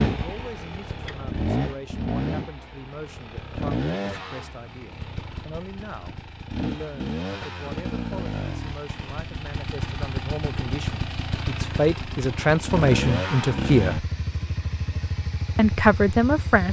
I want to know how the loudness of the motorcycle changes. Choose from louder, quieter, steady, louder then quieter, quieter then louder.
steady.